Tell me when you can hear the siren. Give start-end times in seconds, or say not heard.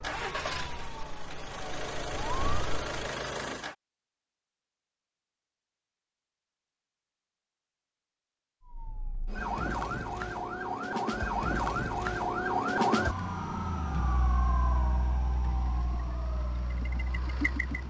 0.0-2.9, 8.7-17.8.